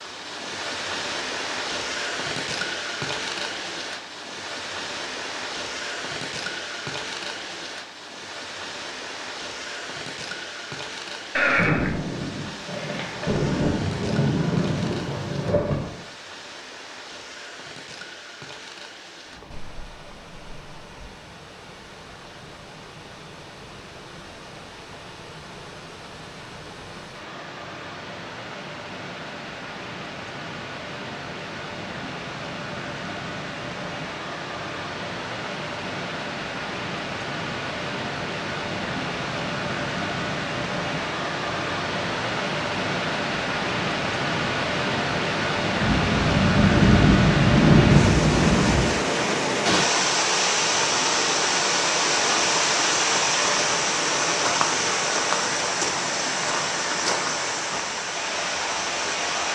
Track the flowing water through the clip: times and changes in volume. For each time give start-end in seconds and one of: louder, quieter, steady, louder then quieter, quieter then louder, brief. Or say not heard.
0.0-59.5 quieter then louder.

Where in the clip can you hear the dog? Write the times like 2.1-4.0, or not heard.
not heard.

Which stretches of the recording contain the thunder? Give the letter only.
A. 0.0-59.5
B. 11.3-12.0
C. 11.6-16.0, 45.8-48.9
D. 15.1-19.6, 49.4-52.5
C.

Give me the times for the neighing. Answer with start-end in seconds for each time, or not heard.
11.3-12.0.